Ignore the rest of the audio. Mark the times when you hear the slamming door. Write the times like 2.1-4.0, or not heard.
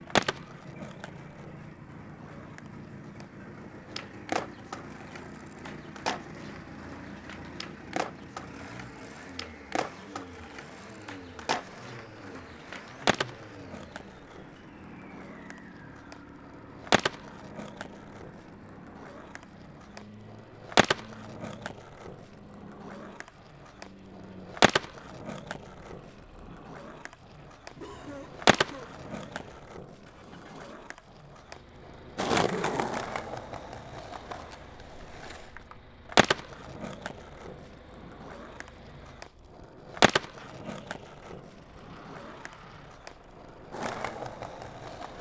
not heard.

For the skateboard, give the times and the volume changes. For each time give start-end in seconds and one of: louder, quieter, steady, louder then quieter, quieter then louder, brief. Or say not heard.
0.1-45.1 louder.